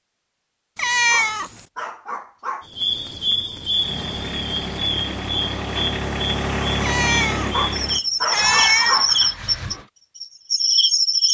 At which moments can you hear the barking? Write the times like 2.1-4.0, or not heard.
0.9-2.6, 7.3-9.2.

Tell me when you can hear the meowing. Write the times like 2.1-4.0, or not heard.
0.8-1.6, 6.8-9.0.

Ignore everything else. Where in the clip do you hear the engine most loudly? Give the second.
7 s.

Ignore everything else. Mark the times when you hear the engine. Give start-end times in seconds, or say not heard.
3.7-9.9.